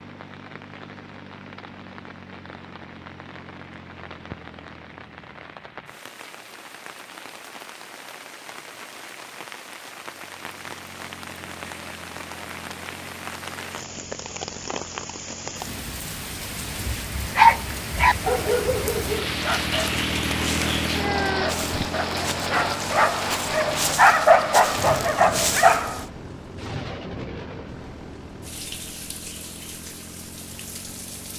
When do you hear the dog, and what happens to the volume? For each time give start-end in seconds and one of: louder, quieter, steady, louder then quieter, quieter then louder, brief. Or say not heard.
17.4-26.1 quieter then louder.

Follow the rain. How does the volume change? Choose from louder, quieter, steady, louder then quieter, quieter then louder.
louder then quieter.